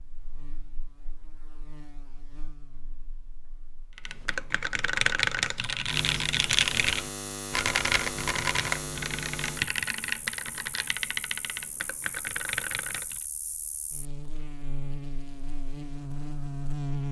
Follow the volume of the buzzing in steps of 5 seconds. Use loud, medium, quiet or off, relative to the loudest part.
quiet, loud, medium, loud.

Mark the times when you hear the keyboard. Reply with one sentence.
You can hear the keyboard from 4.0 to 13.2 s.